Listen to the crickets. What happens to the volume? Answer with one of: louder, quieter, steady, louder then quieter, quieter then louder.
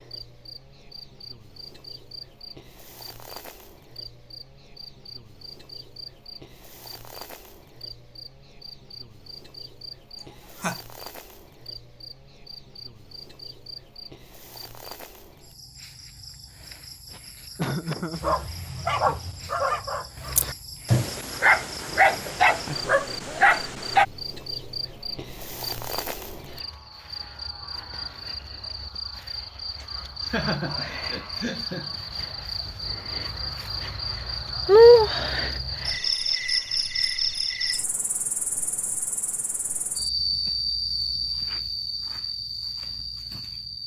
louder.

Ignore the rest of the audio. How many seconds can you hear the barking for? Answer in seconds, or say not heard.
6 s.